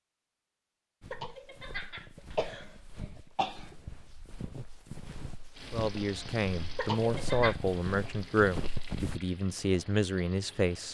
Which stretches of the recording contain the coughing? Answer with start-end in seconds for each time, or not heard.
1.1-3.8, 6.8-7.5.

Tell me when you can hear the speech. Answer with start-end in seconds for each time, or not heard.
5.7-10.9.